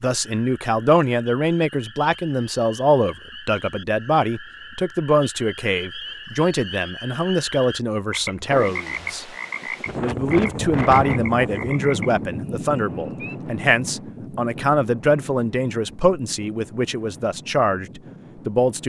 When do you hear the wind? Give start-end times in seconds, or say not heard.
8.4-18.8.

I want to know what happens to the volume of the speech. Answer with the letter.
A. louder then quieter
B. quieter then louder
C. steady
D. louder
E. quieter
C.